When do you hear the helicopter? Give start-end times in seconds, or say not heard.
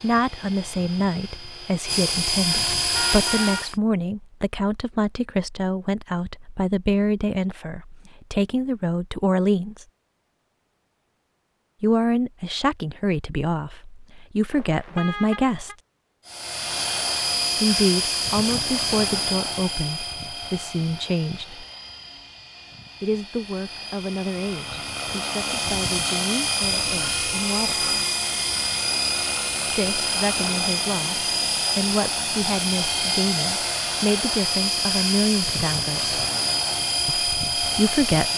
0.0-3.8, 16.2-38.3.